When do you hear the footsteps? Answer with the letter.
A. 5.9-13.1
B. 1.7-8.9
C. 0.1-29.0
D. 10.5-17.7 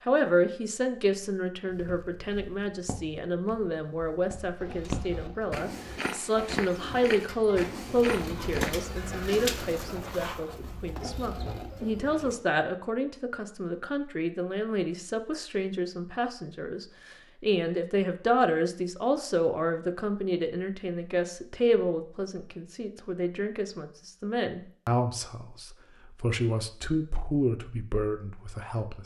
B.